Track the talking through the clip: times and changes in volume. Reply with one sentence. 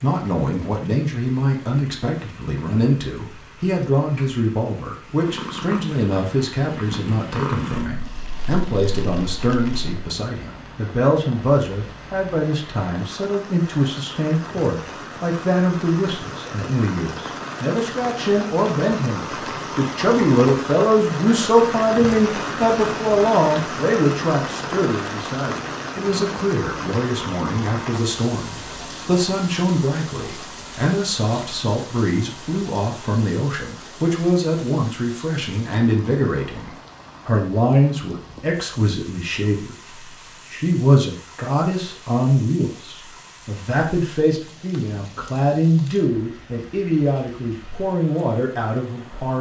The talking can be heard from 0.0 to 49.3 s, at a steady volume.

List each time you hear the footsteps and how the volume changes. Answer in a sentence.
The footsteps can't be heard in this clip.